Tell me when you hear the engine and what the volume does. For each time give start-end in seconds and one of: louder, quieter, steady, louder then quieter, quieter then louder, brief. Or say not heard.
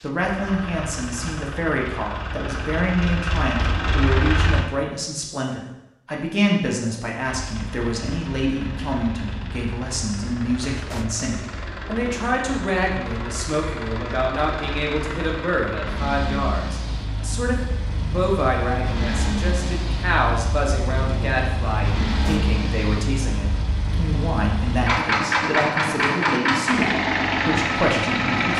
0.0-4.7 louder
7.2-28.5 louder.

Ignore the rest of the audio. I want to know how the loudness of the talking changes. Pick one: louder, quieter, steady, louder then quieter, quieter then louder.
steady.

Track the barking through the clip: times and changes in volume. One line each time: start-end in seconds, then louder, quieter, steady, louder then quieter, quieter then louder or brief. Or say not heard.
not heard.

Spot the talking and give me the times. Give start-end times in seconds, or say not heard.
0.0-28.5.